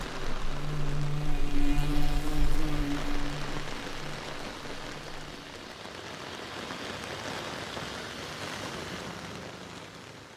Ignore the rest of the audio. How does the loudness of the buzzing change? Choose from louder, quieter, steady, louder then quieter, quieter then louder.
quieter.